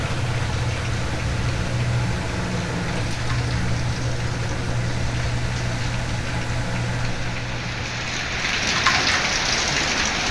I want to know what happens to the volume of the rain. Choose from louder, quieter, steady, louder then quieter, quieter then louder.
louder.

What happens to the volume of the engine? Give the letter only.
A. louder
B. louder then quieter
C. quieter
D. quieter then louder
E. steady
C.